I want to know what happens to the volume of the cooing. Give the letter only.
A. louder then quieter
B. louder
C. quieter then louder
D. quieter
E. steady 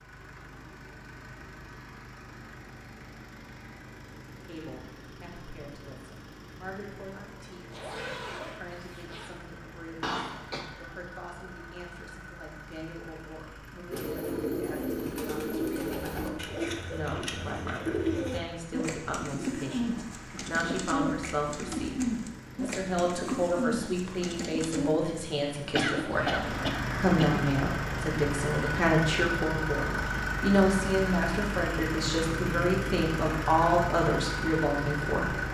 E.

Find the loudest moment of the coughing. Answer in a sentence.
The volume of the coughing peaks at 26 seconds.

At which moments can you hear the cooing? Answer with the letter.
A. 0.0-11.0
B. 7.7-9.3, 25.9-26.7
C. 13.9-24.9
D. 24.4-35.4
C.